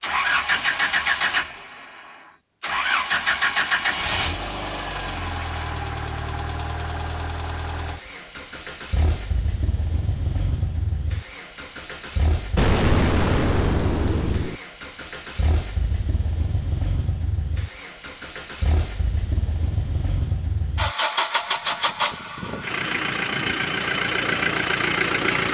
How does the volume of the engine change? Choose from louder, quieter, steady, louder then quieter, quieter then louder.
quieter then louder.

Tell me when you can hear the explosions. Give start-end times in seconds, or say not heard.
12.6-14.6.